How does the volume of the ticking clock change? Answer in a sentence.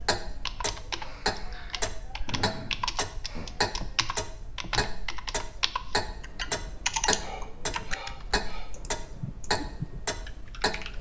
The volume of the ticking clock stays about the same.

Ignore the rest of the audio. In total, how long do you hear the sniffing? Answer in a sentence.
You can hear the sniffing for 4 seconds altogether.